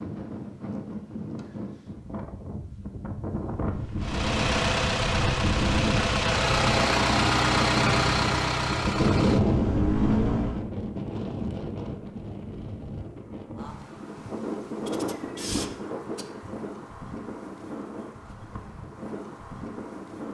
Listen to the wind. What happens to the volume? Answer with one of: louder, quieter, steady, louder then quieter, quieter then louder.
louder then quieter.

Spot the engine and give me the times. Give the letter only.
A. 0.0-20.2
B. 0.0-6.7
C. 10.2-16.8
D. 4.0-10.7
D.